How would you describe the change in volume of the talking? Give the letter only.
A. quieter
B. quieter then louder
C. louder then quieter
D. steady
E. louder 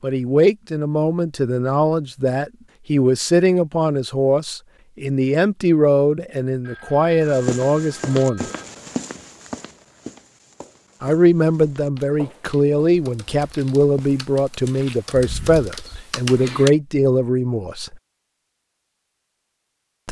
D.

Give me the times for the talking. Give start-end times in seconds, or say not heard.
0.0-8.4, 11.0-17.9.